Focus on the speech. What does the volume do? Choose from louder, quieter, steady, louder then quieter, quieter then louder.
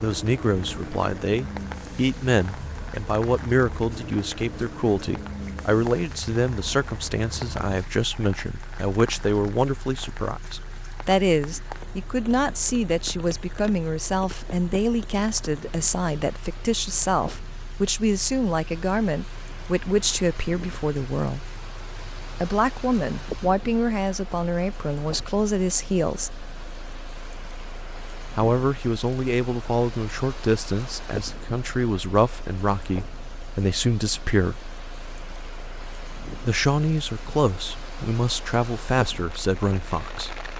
steady.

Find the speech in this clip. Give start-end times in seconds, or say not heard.
0.0-21.4, 22.4-26.4, 28.4-34.7, 36.5-40.4.